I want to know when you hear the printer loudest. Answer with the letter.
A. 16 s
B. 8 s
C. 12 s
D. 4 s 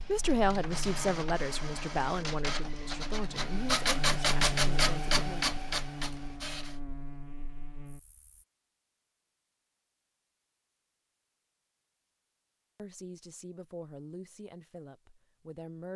D.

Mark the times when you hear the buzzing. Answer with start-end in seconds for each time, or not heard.
0.0-8.4.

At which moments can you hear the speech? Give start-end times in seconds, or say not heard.
0.1-5.5, 12.8-15.9.